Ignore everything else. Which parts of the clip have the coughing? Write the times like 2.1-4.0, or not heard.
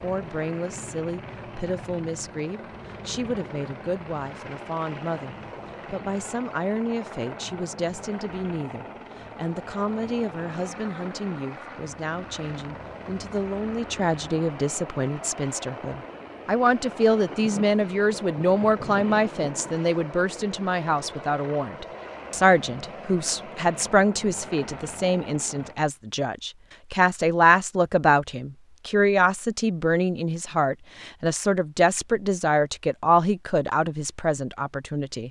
not heard.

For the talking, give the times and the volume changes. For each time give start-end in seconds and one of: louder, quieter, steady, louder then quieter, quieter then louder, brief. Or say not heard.
0.0-35.2 louder.